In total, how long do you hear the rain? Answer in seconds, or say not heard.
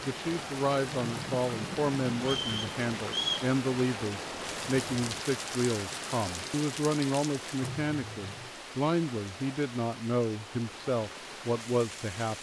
12 s.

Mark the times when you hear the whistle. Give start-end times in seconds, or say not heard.
2.2-3.5.